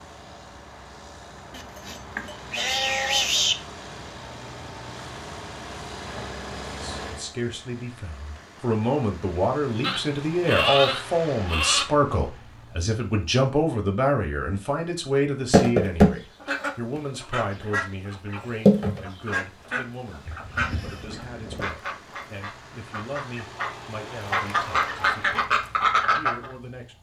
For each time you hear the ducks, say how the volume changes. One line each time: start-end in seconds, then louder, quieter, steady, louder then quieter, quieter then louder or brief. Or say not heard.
15.5-26.5 quieter then louder.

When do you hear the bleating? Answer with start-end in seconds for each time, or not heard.
1.5-3.5, 9.8-11.8, 20.2-21.8.